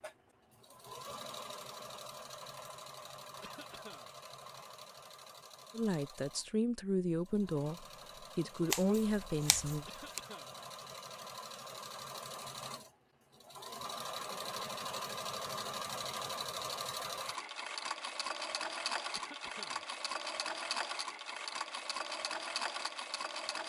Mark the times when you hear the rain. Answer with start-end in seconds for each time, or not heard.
not heard.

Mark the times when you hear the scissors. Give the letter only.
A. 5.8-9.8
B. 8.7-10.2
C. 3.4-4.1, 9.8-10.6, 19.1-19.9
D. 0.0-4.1
B.